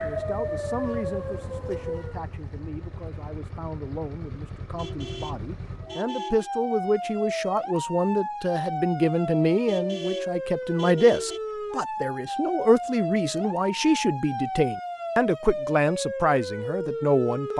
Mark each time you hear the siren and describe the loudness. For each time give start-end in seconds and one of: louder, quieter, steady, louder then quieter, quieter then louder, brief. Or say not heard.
0.0-2.3 brief
5.8-17.5 steady.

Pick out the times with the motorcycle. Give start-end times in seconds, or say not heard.
0.0-6.0.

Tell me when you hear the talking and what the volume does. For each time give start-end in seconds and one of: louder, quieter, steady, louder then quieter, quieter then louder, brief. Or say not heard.
0.0-17.5 louder.